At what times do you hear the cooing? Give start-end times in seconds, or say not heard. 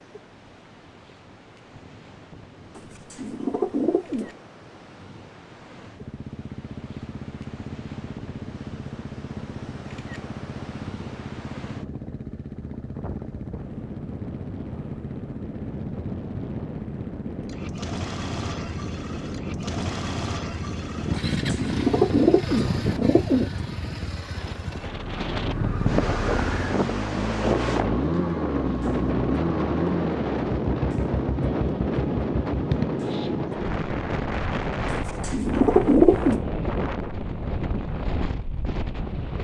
2.8-4.3, 21.1-23.5, 34.9-36.4.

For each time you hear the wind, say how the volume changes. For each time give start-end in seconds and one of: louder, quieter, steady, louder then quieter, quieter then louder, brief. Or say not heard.
0.0-39.3 louder.